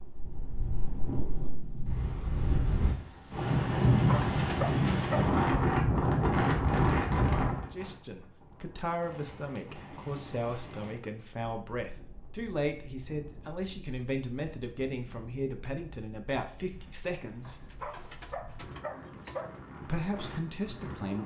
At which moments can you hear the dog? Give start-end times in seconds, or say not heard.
3.9-5.3, 17.4-19.6.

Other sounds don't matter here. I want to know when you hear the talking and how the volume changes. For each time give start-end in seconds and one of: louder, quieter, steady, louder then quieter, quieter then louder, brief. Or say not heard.
7.5-17.6 steady
19.8-21.2 brief.